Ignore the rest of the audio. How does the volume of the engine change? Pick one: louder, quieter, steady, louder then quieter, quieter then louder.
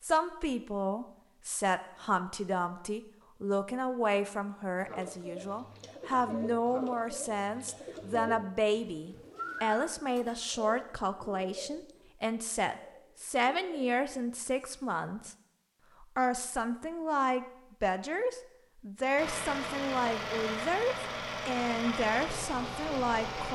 steady.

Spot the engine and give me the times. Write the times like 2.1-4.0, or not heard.
19.1-23.5.